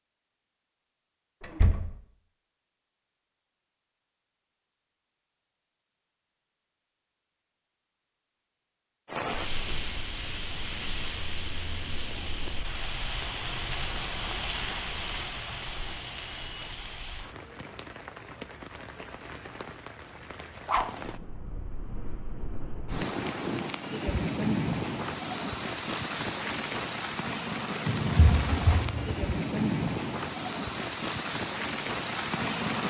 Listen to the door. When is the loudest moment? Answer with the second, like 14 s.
29 s.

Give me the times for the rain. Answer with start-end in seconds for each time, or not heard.
9.1-32.8.